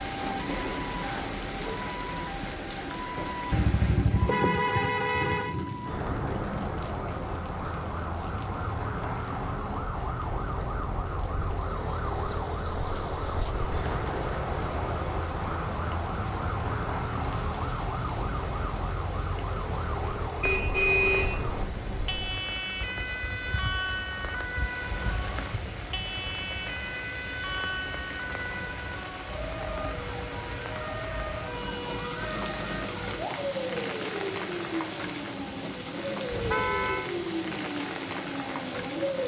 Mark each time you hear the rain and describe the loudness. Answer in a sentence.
You can hear the rain from 0.0 to 39.2 s, getting quieter then louder.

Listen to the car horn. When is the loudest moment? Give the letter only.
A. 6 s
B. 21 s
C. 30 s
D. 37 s
B.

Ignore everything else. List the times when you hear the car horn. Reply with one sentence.
You can hear the car horn from 3.5 to 5.5 s, from 20.4 to 22.4 s and from 36.3 to 37.1 s.